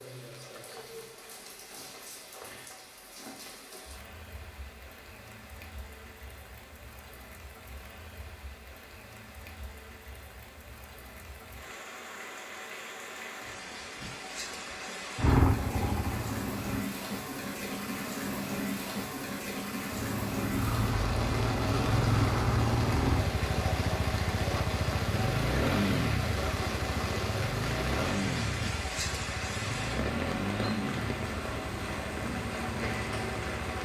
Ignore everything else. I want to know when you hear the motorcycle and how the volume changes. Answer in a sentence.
The motorcycle can be heard briefly from 15.2 to 16.9 s; and from 19.9 to 33.8 s, getting quieter.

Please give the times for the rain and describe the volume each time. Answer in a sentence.
The rain can be heard from 0.0 to 33.8 s, getting louder.